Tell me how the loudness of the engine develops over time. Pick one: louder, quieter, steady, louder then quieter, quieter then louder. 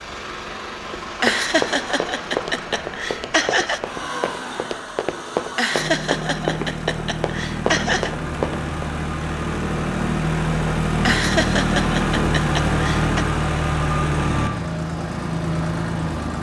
louder.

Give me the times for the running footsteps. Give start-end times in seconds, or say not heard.
0.9-8.8.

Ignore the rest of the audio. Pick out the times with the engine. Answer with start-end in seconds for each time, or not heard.
0.0-16.3.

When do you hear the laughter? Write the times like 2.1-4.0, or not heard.
1.2-3.8, 5.5-8.1, 11.1-13.2.